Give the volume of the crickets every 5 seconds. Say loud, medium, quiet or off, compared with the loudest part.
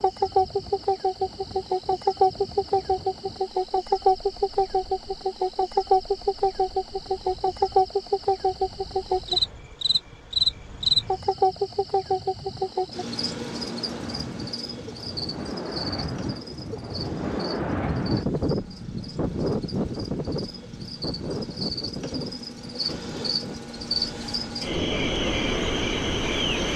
loud, loud, loud, quiet, medium, loud.